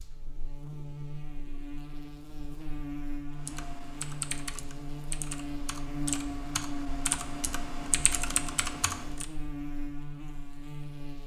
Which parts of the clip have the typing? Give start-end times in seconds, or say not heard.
3.4-9.2.